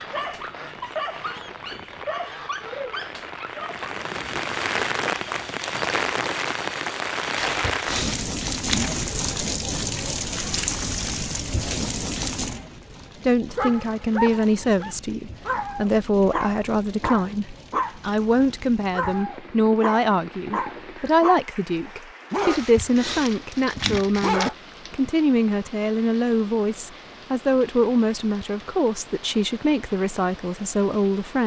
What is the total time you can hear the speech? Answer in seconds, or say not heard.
18 s.